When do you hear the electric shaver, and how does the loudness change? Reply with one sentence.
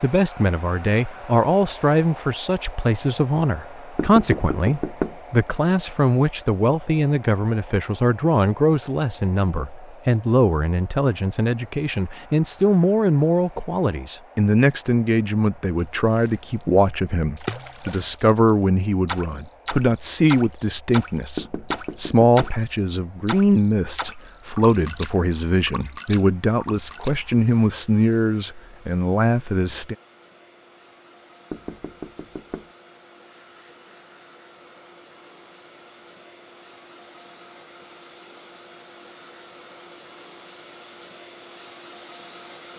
You can't hear the electric shaver here.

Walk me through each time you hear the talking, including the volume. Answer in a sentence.
The talking can be heard from 0.0 to 29.9 s, at a steady volume.